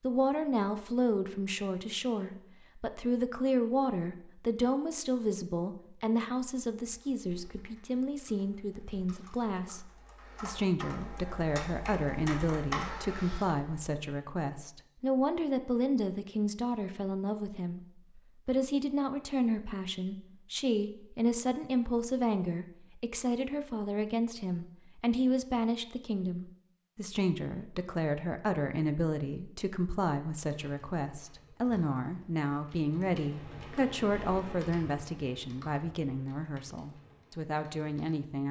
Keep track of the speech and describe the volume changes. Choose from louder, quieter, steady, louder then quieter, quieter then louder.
steady.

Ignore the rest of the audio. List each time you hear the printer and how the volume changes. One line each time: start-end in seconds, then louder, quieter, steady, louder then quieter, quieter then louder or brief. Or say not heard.
not heard.